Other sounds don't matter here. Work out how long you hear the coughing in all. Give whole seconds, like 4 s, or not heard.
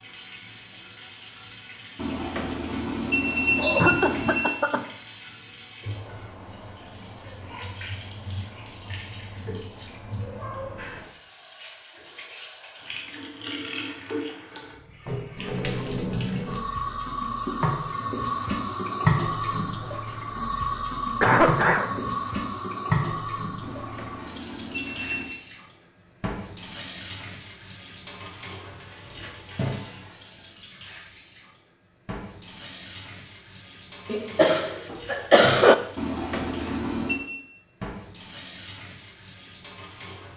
4 s.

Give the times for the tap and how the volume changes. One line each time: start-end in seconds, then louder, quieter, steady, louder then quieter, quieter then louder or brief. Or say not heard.
0.0-40.3 louder then quieter.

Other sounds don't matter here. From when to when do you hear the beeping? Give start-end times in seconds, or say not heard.
1.9-4.5, 23.6-25.3, 36.0-37.2.